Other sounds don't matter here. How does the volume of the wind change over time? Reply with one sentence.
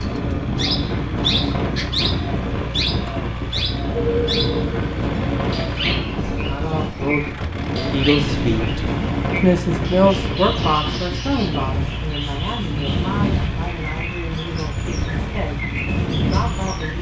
The loudness of the wind stays about the same.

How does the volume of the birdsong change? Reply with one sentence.
The loudness of the birdsong goes down.